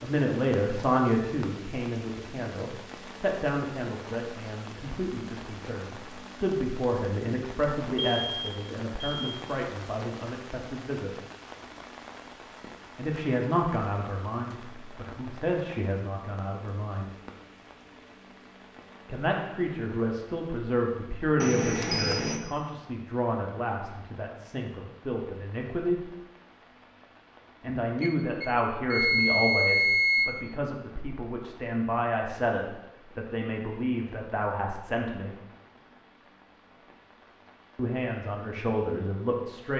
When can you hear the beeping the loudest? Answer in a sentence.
The loudest moment of the beeping is at 30 seconds.